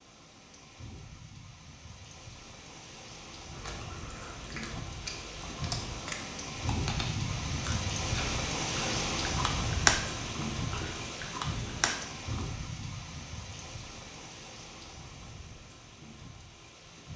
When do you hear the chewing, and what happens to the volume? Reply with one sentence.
You can hear the chewing from 3.5 to 12.4 s, getting louder then quieter.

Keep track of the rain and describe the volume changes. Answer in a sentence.
The loudness of the rain goes up, then down.